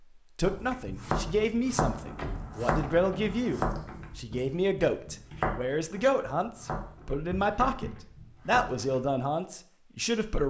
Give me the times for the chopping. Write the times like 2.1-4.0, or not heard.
0.5-9.1.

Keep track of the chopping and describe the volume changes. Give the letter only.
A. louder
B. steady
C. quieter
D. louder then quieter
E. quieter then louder
C.